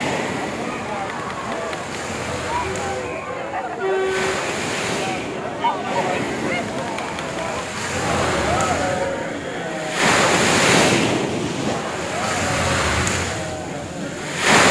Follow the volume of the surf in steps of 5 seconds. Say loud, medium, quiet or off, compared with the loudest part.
medium, medium, loud.